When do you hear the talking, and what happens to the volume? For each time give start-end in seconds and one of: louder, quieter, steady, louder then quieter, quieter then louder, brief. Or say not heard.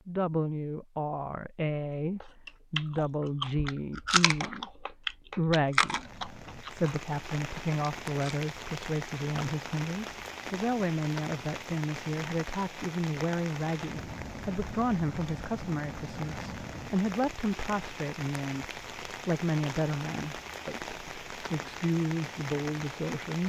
0.1-23.4 steady.